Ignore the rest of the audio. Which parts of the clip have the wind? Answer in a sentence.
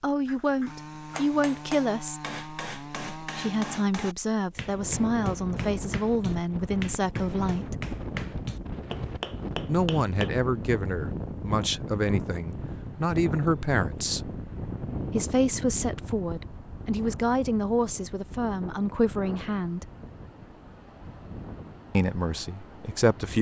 The wind can be heard from 4.5 to 23.3 s.